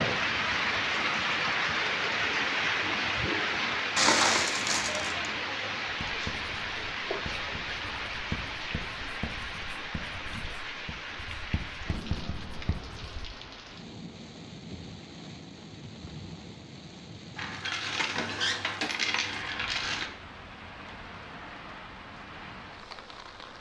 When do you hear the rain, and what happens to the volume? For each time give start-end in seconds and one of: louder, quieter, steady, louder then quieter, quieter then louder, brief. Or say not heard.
0.0-23.5 quieter.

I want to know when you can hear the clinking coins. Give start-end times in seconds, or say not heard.
4.0-5.2, 17.4-20.1.